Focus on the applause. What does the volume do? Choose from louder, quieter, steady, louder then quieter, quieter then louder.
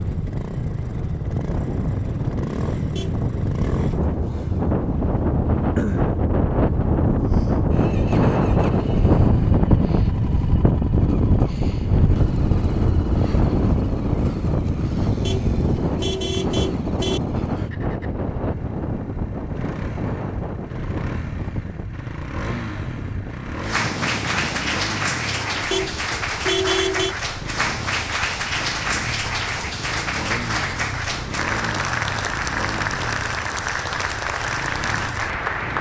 steady.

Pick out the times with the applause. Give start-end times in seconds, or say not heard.
23.5-35.7.